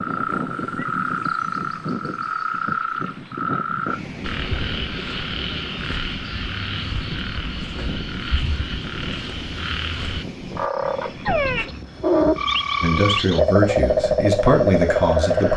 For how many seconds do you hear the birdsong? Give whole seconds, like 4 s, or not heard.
not heard.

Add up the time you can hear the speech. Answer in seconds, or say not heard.
3 s.